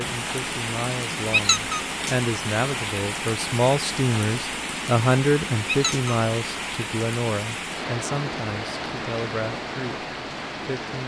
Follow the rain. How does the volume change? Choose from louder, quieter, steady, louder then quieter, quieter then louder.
steady.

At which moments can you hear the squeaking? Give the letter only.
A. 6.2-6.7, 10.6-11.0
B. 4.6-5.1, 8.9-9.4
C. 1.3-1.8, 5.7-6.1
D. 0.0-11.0
C.